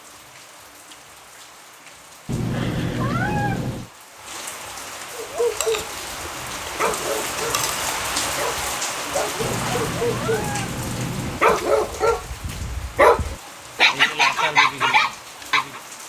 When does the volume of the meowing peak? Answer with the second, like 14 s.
3 s.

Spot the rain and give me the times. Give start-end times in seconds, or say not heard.
0.0-16.0.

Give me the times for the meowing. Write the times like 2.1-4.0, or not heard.
2.2-3.9, 9.4-11.4.